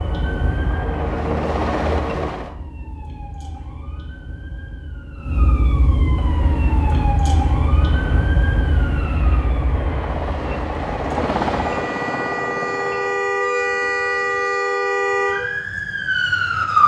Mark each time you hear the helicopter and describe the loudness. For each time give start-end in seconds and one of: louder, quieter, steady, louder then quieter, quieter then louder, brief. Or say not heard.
0.0-2.5 brief
6.2-13.2 louder.